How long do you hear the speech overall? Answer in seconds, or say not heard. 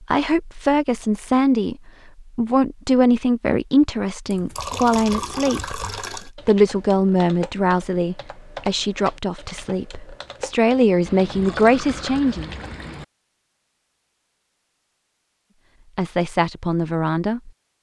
14 s.